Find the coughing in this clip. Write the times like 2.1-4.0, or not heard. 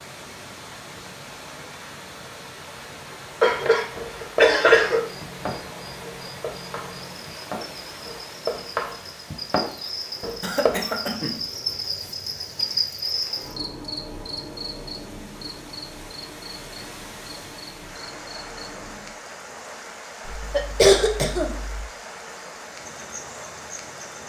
3.4-5.0, 10.4-11.4, 20.2-21.9.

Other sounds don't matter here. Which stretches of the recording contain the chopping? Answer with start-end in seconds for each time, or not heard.
3.6-10.8.